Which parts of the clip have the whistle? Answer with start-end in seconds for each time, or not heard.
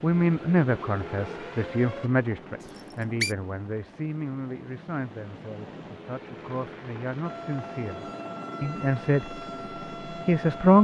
2.8-3.4.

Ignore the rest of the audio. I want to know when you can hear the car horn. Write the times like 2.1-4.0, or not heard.
not heard.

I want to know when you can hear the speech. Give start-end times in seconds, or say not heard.
0.0-9.4, 10.1-10.7.